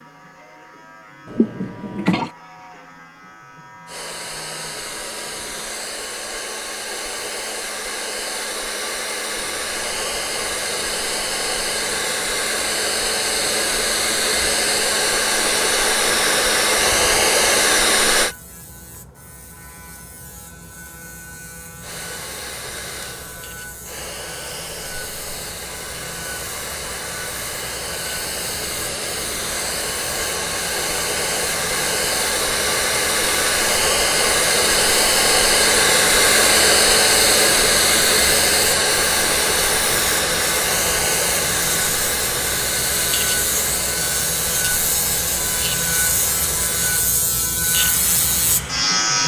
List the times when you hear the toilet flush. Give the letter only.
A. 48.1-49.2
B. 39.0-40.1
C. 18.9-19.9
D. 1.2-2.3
D.